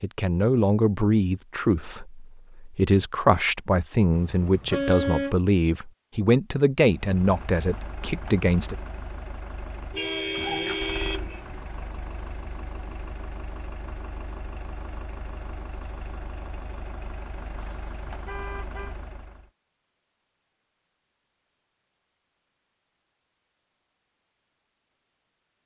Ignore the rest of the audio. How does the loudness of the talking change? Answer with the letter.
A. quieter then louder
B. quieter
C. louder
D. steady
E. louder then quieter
D.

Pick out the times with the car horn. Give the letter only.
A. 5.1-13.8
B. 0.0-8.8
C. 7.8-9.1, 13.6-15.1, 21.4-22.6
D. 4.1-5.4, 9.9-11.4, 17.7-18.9
D.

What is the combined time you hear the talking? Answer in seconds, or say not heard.
9 s.